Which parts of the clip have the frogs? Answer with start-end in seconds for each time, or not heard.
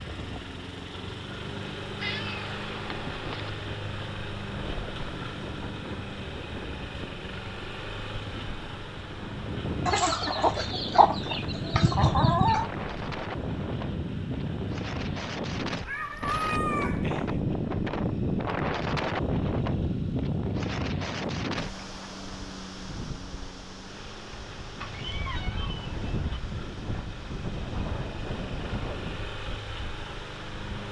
not heard.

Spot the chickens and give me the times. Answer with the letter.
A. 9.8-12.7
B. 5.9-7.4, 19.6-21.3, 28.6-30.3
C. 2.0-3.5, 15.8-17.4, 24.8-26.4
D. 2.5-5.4
A.